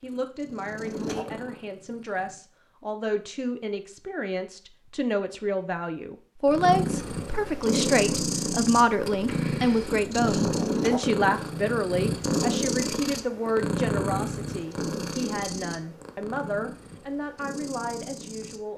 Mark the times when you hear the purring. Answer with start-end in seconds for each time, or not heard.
0.0-2.4, 6.5-18.7.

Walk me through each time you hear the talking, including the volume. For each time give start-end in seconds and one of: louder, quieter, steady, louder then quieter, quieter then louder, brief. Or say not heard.
0.0-18.7 louder then quieter.